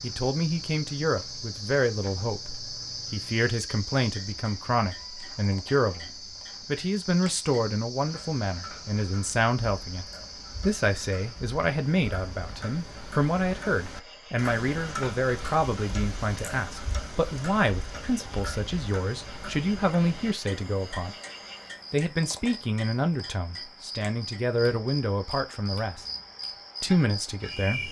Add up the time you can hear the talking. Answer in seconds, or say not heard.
26 s.